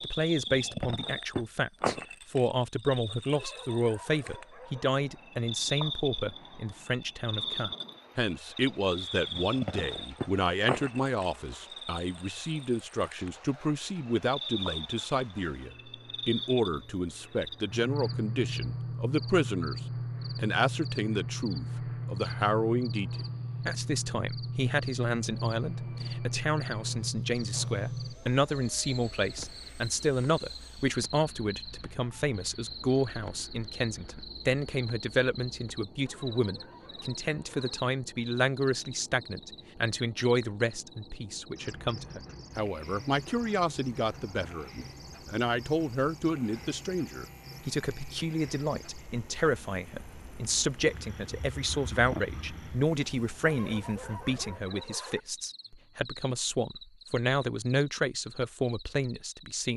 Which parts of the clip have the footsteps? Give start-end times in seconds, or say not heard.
not heard.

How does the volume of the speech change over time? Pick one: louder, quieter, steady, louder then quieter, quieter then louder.
steady.